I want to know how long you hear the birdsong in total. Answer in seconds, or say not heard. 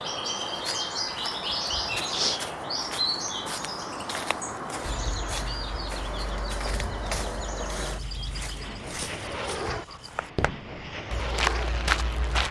9 s.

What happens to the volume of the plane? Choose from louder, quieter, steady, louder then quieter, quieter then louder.
steady.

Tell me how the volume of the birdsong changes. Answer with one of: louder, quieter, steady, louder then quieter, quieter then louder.
quieter.